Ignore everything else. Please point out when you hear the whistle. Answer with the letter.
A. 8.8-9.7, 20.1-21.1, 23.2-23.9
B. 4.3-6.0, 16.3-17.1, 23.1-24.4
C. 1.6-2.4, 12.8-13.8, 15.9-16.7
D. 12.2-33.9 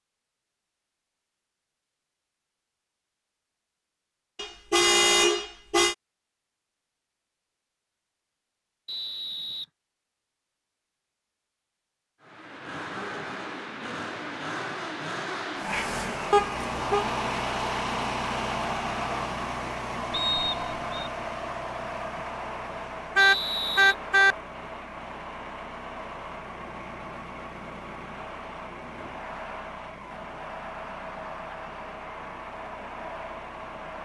A.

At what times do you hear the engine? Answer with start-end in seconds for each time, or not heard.
12.2-33.9.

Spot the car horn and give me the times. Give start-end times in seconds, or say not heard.
4.3-6.0, 16.3-17.1, 23.1-24.4.